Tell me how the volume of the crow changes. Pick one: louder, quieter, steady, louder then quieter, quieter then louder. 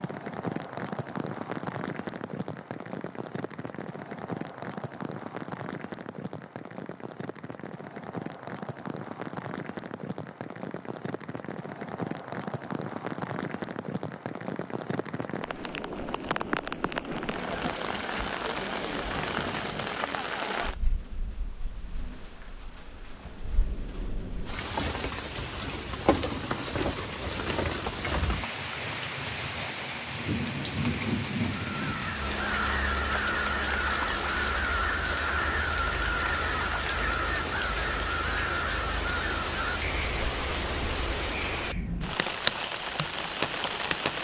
quieter.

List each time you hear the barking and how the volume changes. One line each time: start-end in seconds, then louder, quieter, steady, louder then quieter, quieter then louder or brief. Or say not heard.
not heard.